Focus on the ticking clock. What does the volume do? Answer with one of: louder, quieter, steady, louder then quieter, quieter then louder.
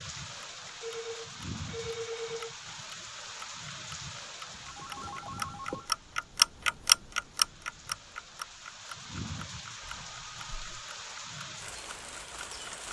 louder then quieter.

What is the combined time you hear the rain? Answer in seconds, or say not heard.
13 s.